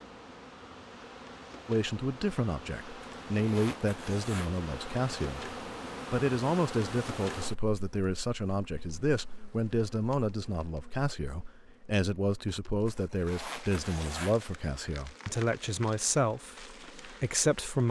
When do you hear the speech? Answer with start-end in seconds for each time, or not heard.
1.6-17.8.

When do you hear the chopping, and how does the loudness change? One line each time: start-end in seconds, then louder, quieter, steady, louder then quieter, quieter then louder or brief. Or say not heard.
not heard.